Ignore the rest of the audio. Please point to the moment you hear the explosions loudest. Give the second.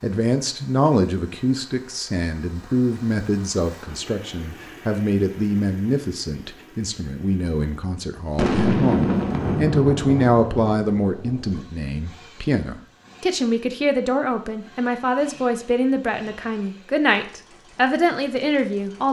9 s.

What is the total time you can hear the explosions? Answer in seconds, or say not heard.
3 s.